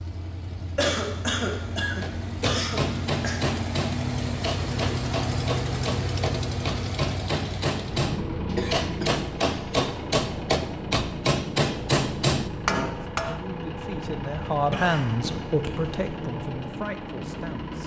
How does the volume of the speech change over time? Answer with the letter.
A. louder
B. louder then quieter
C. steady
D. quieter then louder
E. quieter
B.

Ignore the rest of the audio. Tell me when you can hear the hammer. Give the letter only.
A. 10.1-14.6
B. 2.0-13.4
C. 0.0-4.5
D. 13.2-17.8
B.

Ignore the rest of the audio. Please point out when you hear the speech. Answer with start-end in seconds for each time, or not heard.
13.2-17.8.